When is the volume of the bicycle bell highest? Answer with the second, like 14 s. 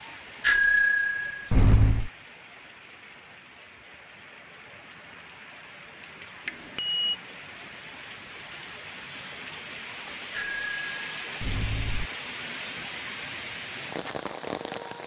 1 s.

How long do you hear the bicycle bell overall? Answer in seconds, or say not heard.
4 s.